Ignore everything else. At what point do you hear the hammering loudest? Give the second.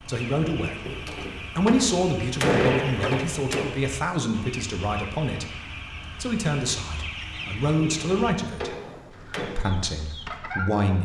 3 s.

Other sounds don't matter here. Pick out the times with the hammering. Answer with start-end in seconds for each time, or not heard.
0.8-3.7, 7.8-9.5.